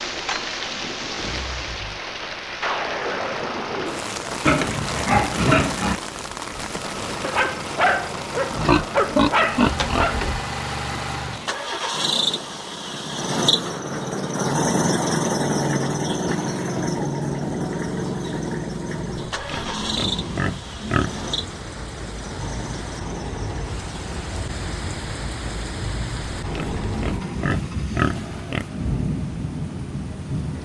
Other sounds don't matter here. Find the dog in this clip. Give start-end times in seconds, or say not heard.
7.2-10.2.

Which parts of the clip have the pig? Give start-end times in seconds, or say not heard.
4.5-6.0, 8.5-10.4, 19.4-21.2, 26.4-28.6.